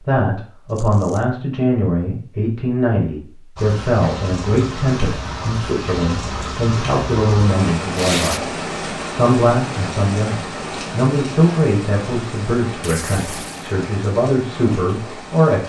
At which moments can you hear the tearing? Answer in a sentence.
You can hear the tearing from 0.7 to 1.2 s, from 8.0 to 8.4 s and from 12.8 to 13.7 s.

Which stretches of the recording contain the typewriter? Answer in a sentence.
The typewriter can't be heard in this clip.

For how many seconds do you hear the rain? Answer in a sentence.
The rain can be heard for 12 seconds in total.